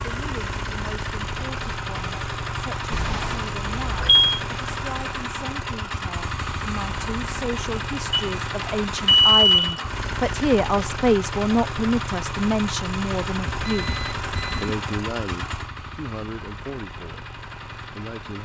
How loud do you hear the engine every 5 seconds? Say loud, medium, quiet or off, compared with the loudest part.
loud, loud, loud, medium.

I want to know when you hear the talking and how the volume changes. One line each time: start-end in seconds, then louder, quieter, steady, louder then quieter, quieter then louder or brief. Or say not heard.
0.0-13.9 louder
14.6-17.2 brief
17.9-18.4 brief.